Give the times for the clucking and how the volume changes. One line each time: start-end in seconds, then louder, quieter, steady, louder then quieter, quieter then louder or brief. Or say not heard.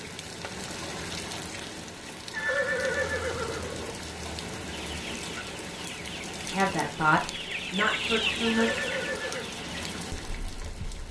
4.7-11.0 louder then quieter.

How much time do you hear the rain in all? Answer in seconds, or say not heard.
11 s.